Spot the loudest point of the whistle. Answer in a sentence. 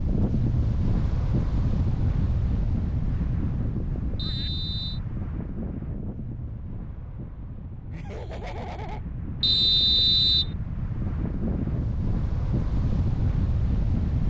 The loudest moment of the whistle is at 10 seconds.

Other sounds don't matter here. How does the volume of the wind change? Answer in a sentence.
The volume of the wind goes down, then up.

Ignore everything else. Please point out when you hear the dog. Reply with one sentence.
The dog can't be heard in this clip.